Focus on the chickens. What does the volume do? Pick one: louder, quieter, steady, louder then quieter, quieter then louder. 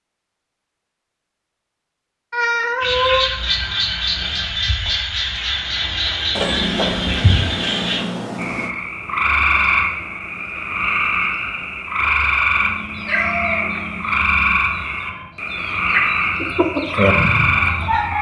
quieter then louder.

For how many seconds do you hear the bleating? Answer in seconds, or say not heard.
not heard.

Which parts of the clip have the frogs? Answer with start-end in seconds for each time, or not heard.
2.8-18.1.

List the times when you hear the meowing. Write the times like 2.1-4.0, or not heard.
2.3-3.2, 6.3-8.8, 12.6-14.6.